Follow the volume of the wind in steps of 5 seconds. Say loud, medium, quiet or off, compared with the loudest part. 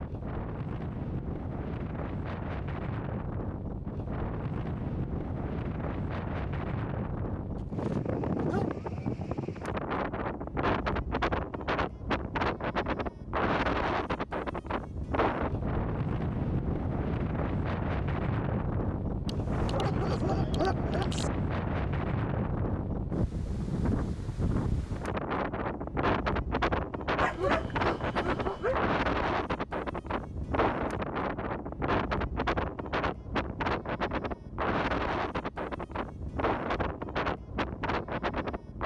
medium, loud, loud, loud, loud, loud, loud, loud.